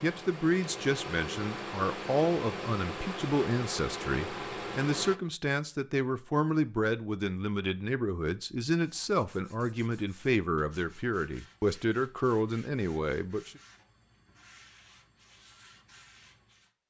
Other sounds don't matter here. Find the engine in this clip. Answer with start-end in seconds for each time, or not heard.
0.0-5.2.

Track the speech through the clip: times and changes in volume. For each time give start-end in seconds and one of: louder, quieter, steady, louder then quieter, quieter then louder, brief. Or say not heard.
0.0-13.6 steady.